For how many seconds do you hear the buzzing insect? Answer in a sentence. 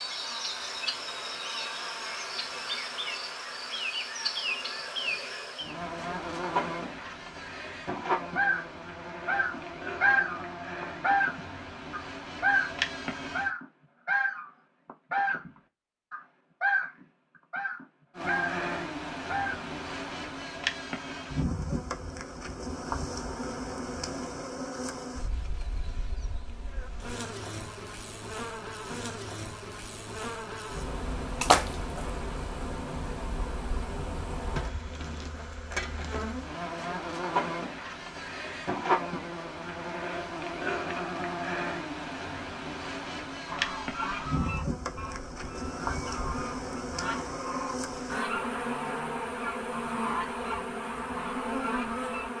The buzzing insect can be heard for 48 seconds in total.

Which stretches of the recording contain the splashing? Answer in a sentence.
You can hear the splashing from 31.4 to 32.1 s.